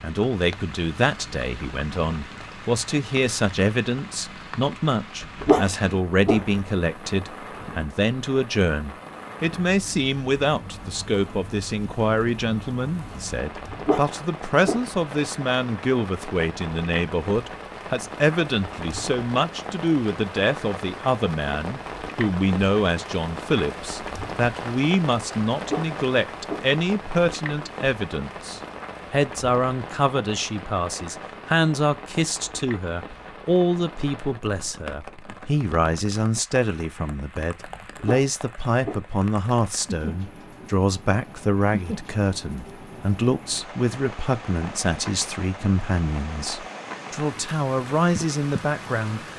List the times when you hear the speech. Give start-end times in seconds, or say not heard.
0.0-49.2.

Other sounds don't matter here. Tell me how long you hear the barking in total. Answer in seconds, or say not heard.
5 s.